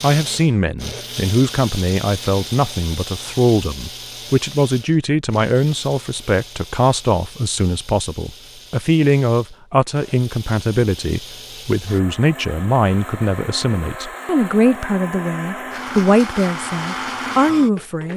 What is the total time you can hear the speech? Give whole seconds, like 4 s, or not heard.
18 s.